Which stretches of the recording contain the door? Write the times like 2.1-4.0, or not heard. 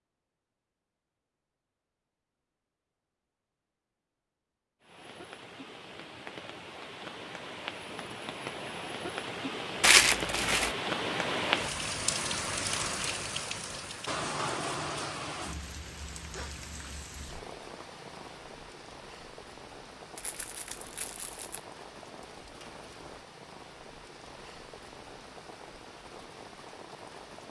not heard.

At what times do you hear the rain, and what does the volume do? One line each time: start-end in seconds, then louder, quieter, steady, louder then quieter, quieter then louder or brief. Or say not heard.
4.8-27.4 louder then quieter.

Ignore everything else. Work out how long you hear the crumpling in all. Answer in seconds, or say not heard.
2 s.